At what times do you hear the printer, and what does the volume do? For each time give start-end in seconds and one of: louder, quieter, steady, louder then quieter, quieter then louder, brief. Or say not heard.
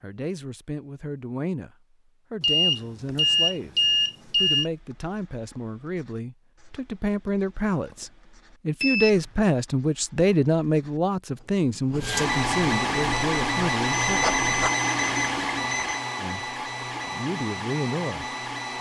12.0-18.7 quieter.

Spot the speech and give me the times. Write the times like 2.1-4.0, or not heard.
0.0-14.3, 16.1-18.3.